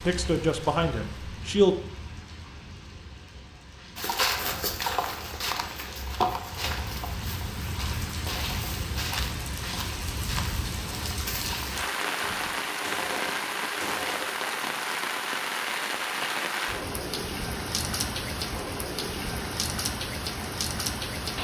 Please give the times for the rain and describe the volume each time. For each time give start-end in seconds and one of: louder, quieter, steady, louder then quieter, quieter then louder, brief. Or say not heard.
0.0-21.3 louder.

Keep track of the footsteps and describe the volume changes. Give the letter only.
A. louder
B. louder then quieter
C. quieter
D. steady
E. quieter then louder
C.